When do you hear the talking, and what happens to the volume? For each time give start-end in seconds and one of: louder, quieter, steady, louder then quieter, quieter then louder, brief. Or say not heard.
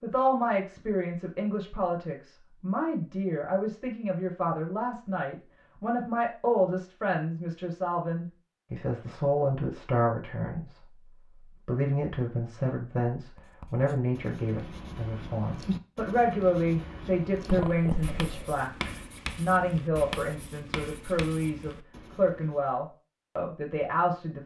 0.0-24.4 steady.